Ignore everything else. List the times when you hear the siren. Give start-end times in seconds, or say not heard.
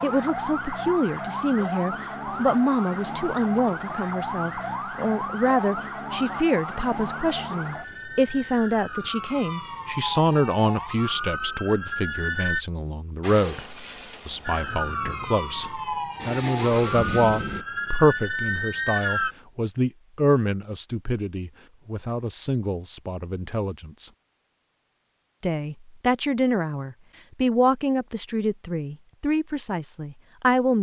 0.0-12.7, 14.4-19.4.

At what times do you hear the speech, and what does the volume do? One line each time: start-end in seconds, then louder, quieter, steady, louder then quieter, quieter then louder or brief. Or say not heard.
0.0-24.1 steady
25.4-30.7 quieter.